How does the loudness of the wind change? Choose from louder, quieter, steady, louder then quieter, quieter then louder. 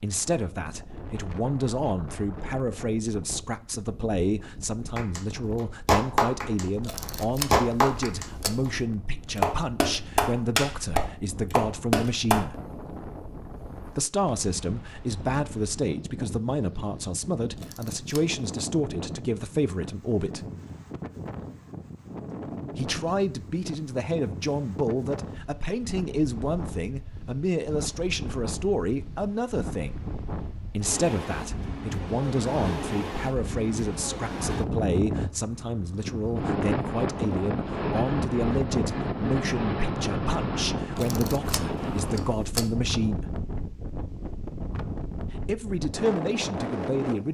louder.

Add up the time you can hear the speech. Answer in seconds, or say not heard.
41 s.